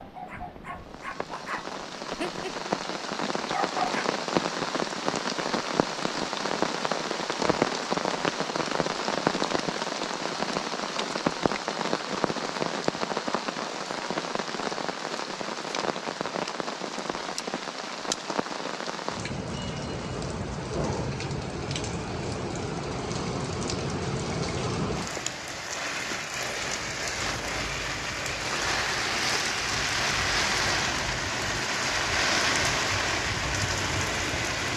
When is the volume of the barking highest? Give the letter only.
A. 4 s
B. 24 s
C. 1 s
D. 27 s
A.